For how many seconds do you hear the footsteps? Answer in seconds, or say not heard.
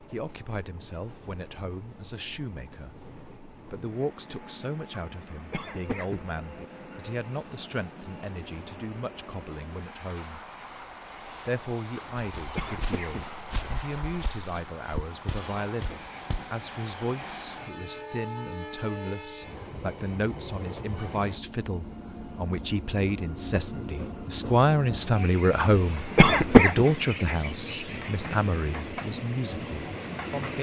4 s.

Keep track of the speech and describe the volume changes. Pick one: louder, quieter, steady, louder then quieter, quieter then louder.
louder.